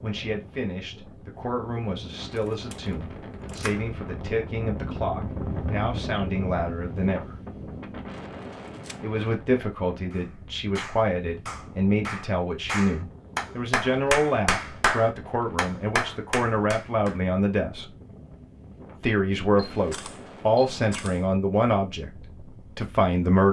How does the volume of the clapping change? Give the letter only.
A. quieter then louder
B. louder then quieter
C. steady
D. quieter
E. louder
E.